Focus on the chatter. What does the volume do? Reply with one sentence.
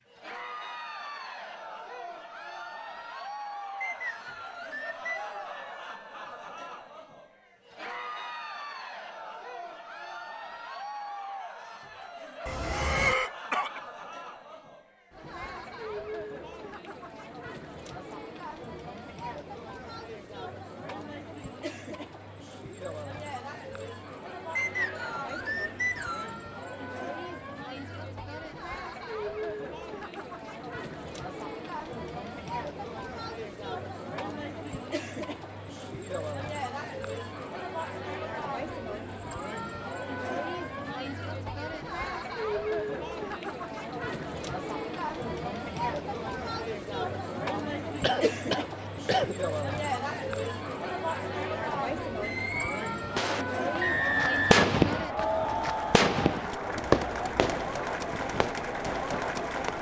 The volume of the chatter goes up.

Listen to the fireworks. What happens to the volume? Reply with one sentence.
The loudness of the fireworks goes up, then down.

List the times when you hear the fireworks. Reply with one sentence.
You can hear the fireworks from 52.2 to 59.7 s.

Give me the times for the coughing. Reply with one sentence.
The coughing can be heard from 12.4 to 13.8 s and from 48.0 to 49.4 s.